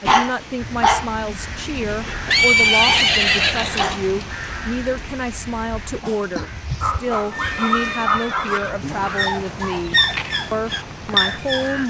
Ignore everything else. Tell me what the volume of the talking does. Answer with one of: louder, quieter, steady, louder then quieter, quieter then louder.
steady.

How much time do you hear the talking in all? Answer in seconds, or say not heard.
12 s.